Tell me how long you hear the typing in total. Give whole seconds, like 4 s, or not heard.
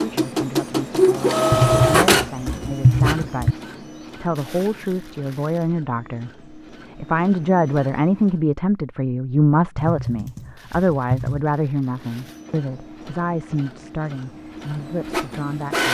4 s.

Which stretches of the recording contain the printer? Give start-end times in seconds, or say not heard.
0.0-8.3, 11.9-15.8.